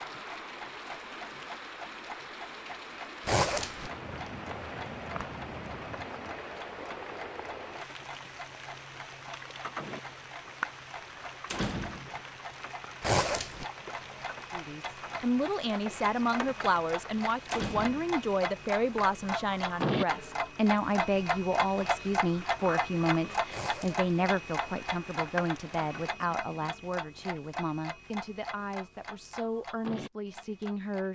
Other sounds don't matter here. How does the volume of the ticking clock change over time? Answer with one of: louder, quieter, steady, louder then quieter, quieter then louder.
louder then quieter.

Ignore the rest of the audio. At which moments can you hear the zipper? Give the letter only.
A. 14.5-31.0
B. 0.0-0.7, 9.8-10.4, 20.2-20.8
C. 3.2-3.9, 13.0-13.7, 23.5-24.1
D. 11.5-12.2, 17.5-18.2
C.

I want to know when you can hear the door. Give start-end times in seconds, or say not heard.
11.5-12.2, 17.5-18.2.